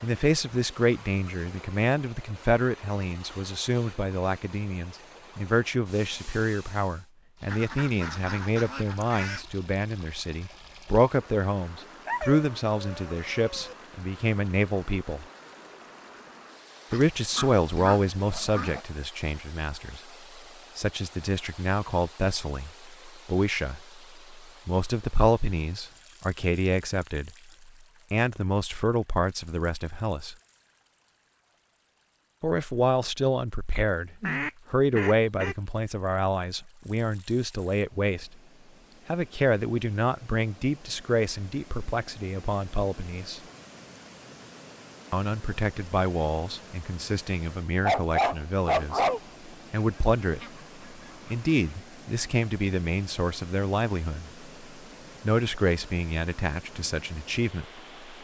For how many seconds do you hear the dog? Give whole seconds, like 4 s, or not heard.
3 s.